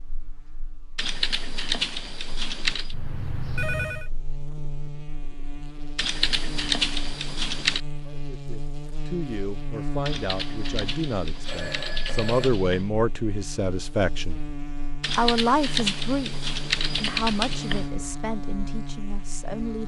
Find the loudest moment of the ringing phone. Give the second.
4 s.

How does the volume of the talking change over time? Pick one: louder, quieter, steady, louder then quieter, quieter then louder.
louder then quieter.